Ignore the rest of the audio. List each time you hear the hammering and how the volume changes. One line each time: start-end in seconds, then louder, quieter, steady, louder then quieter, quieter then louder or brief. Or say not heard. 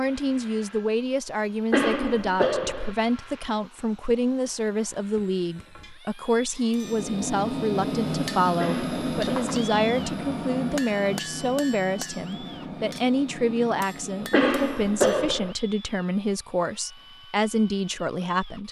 6.7-15.2 quieter.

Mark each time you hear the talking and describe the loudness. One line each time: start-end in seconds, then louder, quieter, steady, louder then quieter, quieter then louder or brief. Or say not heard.
0.0-18.6 steady.